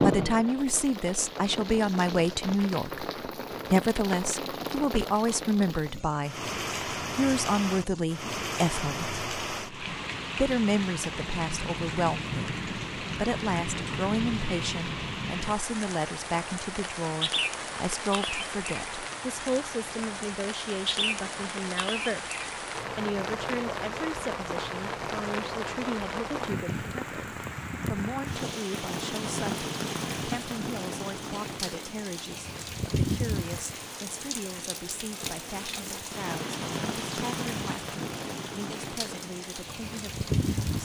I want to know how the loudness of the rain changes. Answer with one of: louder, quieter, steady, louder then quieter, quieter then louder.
steady.